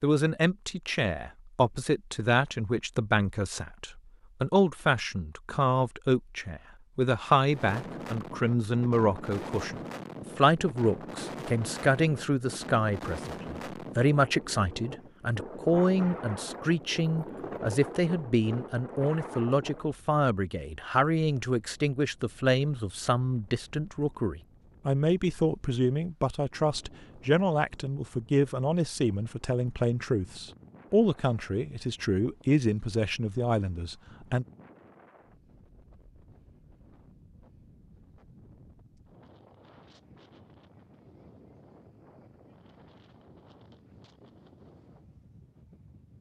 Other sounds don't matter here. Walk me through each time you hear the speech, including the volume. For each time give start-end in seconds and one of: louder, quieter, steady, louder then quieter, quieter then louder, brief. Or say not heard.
0.0-34.5 steady.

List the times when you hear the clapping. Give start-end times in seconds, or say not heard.
not heard.